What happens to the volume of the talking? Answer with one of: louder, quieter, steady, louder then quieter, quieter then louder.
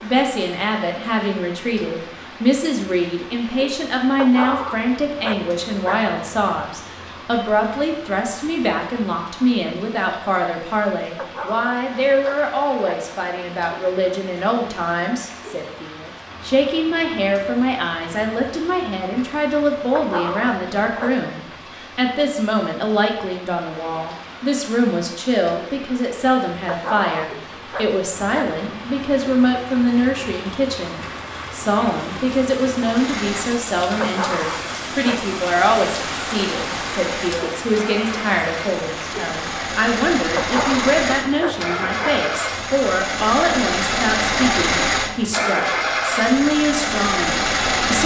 steady.